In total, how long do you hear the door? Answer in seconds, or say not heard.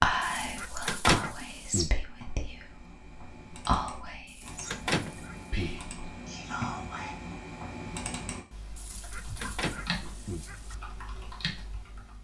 3 s.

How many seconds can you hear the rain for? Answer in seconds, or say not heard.
not heard.